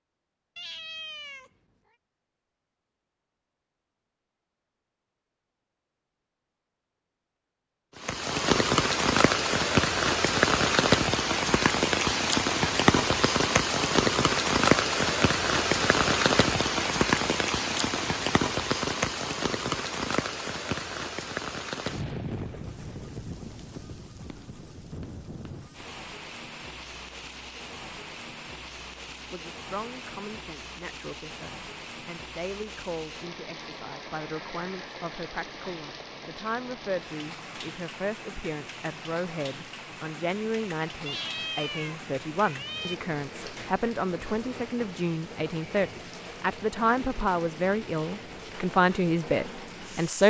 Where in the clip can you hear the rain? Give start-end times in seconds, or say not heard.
8.0-50.2.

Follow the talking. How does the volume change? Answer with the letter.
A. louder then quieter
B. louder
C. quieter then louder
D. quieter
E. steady
B.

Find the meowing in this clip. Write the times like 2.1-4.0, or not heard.
0.6-1.5, 41.0-43.0.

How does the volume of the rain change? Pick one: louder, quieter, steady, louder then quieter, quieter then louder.
quieter.